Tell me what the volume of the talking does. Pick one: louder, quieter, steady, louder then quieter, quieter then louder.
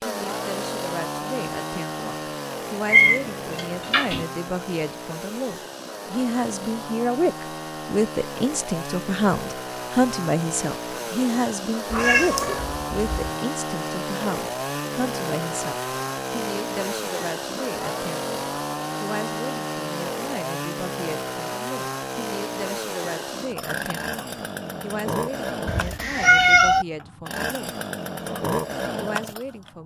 louder then quieter.